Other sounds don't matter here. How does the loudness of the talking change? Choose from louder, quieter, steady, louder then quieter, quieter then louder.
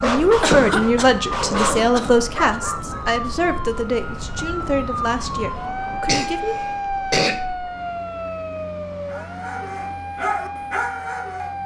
quieter.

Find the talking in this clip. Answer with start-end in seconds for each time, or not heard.
0.0-6.5.